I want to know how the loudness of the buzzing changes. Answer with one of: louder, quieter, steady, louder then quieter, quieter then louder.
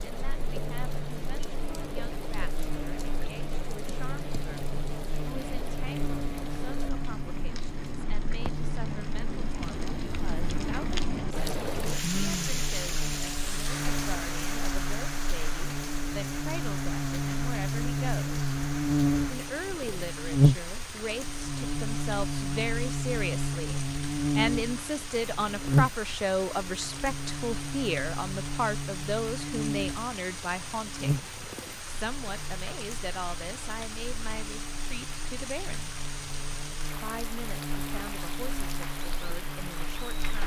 louder then quieter.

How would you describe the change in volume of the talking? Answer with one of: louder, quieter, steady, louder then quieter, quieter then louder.
louder then quieter.